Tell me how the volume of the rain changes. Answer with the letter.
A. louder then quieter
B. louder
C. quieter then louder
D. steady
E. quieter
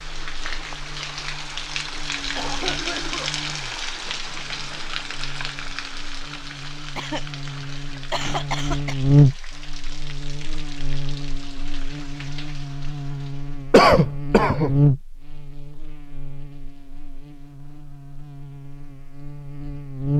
E.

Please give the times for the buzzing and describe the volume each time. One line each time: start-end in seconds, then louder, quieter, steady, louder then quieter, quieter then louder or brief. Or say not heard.
0.0-20.1 louder then quieter.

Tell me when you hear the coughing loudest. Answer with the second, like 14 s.
14 s.